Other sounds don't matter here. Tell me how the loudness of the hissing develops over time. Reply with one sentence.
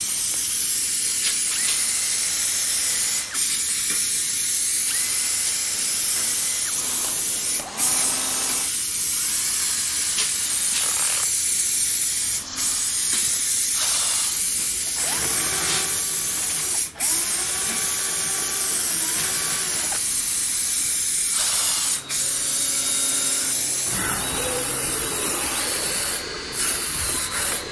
The volume of the hissing stays about the same.